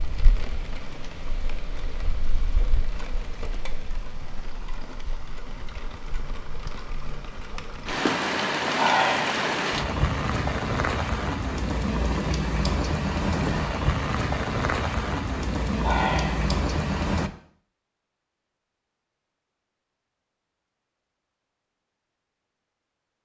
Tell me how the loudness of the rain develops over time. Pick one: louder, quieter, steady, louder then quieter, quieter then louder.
louder.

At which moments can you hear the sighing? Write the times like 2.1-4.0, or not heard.
8.8-9.3, 15.8-16.5.